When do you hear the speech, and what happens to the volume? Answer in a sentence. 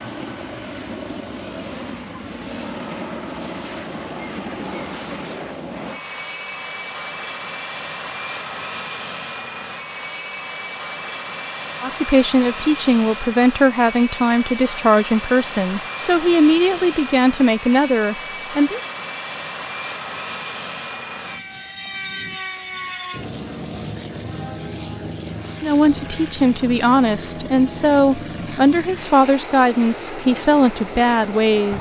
You can hear the speech from 11.8 to 18.8 s, at a steady volume; and from 25.6 to 31.7 s, at a steady volume.